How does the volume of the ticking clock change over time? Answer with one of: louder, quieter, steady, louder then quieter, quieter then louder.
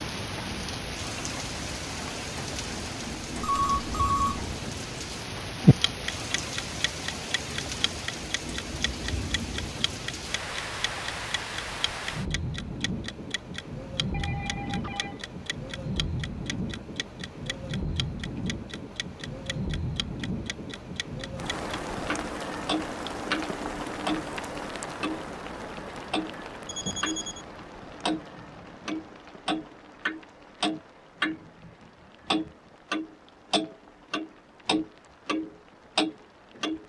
quieter then louder.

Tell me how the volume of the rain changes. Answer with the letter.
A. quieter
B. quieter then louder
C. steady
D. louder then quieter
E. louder
A.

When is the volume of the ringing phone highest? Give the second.
4 s.